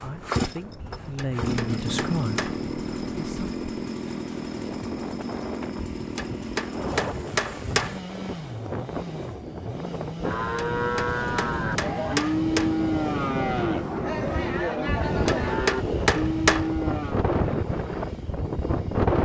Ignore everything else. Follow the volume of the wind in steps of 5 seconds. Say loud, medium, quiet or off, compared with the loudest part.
quiet, medium, medium, loud.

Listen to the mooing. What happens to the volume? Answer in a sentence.
The volume of the mooing stays about the same.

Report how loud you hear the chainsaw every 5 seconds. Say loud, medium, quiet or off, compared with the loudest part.
loud, medium, medium, quiet.